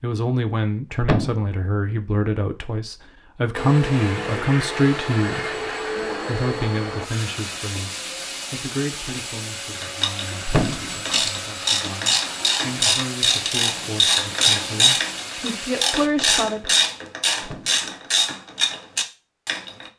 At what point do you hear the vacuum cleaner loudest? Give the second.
6 s.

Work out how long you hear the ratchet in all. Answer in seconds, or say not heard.
10 s.